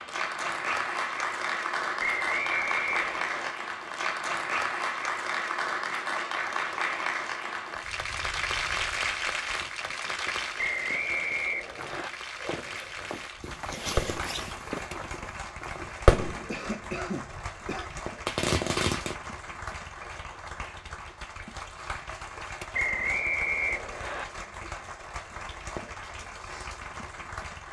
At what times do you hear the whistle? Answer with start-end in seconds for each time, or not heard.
2.0-3.5, 10.6-12.1, 22.7-24.2.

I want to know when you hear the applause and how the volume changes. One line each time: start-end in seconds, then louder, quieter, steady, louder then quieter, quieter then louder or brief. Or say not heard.
0.0-27.6 quieter.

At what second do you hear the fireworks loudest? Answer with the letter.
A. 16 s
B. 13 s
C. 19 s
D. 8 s
A.